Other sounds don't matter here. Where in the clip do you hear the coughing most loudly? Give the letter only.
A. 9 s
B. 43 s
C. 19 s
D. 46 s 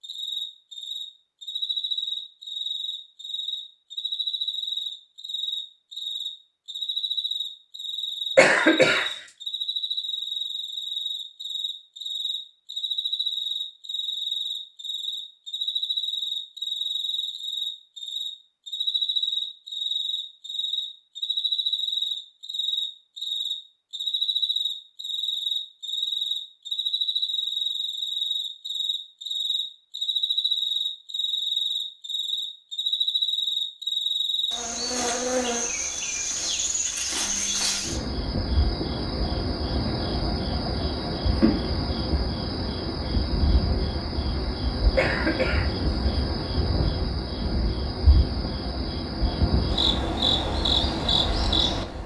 A.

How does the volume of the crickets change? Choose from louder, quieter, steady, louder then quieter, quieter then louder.
steady.